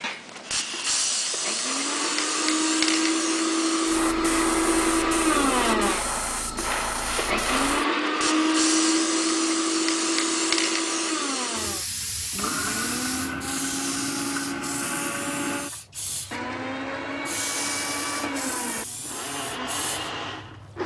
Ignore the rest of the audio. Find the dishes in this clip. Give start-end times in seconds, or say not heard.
not heard.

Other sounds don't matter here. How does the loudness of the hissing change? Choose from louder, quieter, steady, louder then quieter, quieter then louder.
quieter.